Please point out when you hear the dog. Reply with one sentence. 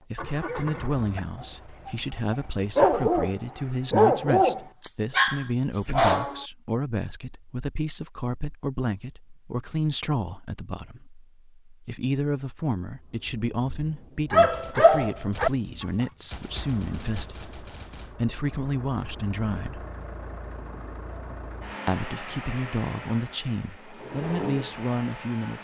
You can hear the dog from 0.4 to 6.3 s and from 13.7 to 16.1 s.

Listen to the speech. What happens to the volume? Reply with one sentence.
The volume of the speech stays about the same.